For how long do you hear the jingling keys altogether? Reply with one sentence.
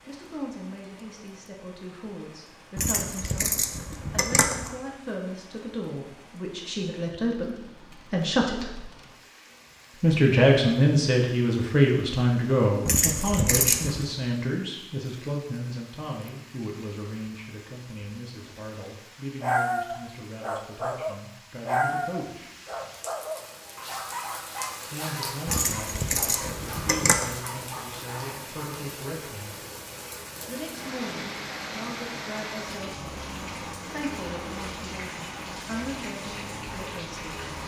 You can hear the jingling keys for 5 seconds altogether.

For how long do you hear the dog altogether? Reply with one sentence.
The dog can be heard for 9 seconds in total.